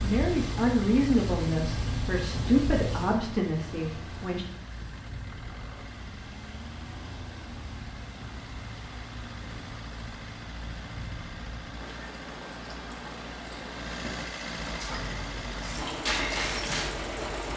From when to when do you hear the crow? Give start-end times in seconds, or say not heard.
not heard.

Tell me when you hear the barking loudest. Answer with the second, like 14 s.
16 s.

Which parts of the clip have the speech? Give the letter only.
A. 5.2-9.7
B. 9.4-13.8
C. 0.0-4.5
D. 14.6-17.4
C.